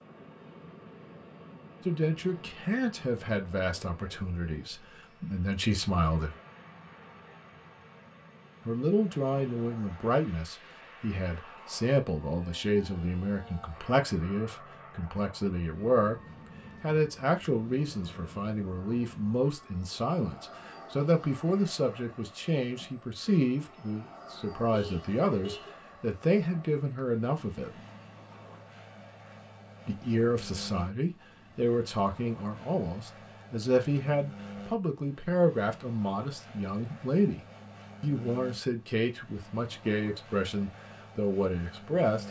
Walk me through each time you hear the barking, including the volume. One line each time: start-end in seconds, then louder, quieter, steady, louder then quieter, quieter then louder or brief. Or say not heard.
not heard.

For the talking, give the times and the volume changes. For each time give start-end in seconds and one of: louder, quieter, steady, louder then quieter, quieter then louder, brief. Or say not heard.
1.8-6.3 quieter then louder
8.7-27.8 steady
29.9-42.2 steady.